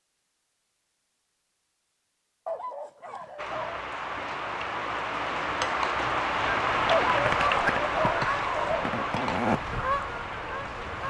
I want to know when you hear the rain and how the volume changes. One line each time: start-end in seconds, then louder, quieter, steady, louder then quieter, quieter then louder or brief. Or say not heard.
3.4-11.0 louder then quieter.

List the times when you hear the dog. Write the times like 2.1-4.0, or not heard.
2.5-3.9, 6.9-8.9.